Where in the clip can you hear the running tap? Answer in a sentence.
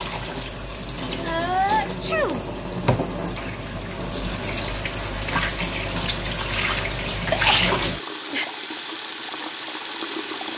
You can hear the running tap from 0.0 to 10.5 s.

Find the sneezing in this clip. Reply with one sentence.
The sneezing can be heard from 1.2 to 2.5 s and from 7.3 to 8.4 s.